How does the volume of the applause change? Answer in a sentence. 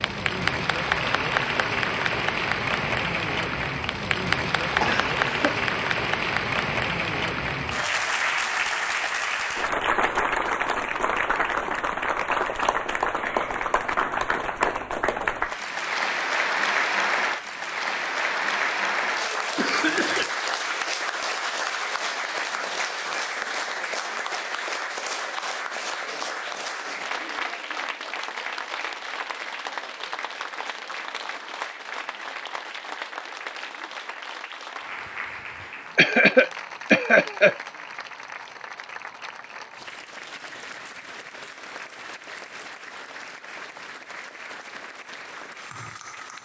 The volume of the applause goes down.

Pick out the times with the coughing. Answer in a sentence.
You can hear the coughing from 4.8 to 5.6 s, from 19.6 to 20.3 s and from 36.0 to 37.5 s.